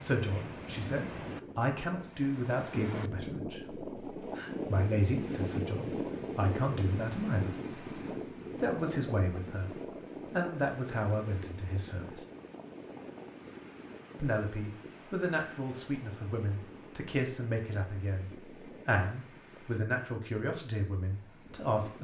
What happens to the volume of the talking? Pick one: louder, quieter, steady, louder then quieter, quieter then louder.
steady.